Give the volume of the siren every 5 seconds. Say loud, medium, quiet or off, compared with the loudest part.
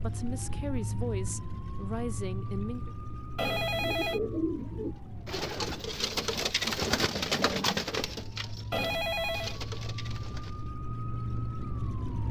loud, medium, loud.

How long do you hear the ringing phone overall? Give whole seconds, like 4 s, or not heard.
2 s.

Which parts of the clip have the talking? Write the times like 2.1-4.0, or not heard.
0.0-3.0.